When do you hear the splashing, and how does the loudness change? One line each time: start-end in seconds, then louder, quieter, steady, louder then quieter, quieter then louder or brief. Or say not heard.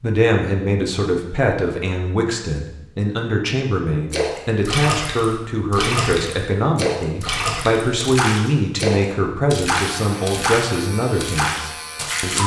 4.1-12.4 steady.